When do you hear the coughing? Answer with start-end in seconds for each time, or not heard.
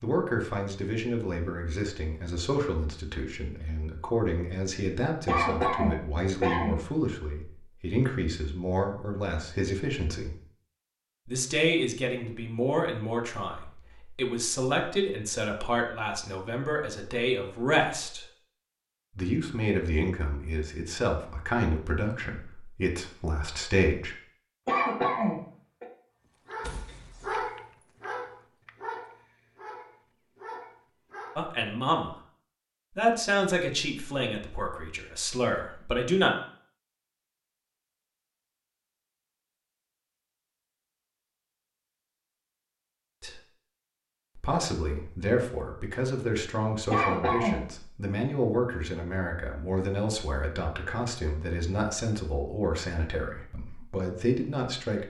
5.2-6.8, 24.6-25.9, 46.9-47.6.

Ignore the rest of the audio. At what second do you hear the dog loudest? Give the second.
27 s.